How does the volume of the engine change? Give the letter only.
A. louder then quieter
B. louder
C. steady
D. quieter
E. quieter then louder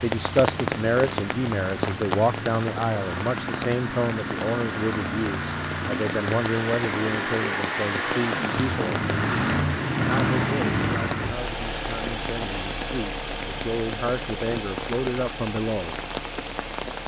A.